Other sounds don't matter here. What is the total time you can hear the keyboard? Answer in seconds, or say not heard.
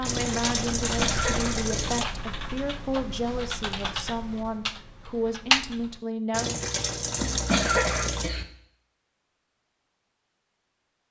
6 s.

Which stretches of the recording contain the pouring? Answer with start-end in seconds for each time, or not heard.
0.0-2.0, 6.3-8.3.